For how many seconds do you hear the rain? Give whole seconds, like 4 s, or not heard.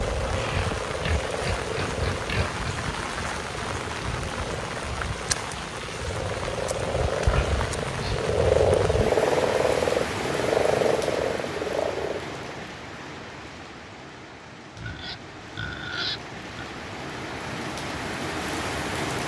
19 s.